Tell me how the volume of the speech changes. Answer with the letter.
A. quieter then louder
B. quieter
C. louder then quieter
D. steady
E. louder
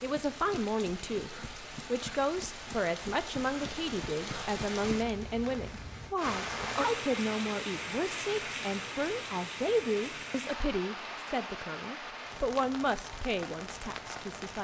D.